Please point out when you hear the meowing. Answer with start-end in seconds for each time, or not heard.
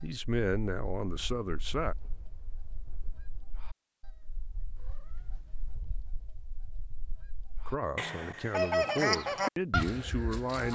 4.8-6.0.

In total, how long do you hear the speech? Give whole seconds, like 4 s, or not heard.
5 s.